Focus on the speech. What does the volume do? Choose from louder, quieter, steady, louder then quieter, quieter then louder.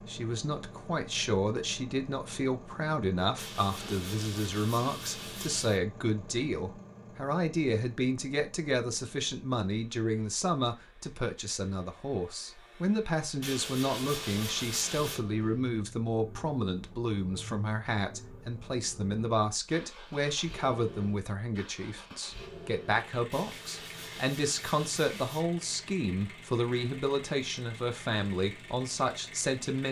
steady.